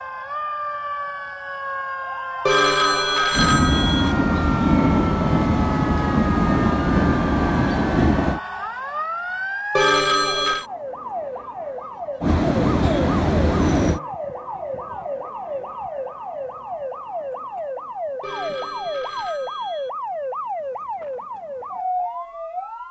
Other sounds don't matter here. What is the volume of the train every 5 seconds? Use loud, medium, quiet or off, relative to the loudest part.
loud, loud, loud, off, off.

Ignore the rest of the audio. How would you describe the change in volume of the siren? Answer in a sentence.
The loudness of the siren stays about the same.